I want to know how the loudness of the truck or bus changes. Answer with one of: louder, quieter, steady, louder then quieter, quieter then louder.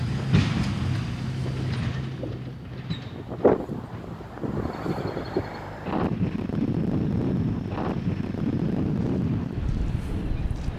quieter.